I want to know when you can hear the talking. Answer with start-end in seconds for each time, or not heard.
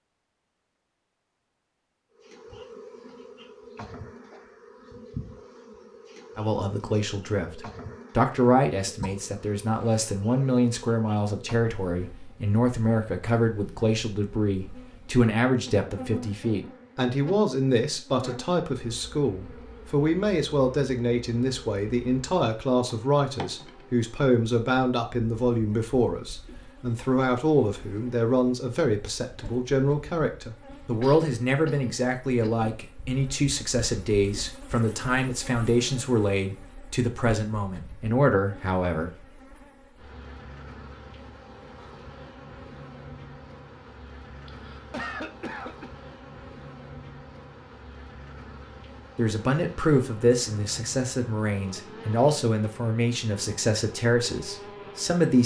6.3-39.1, 49.1-55.4.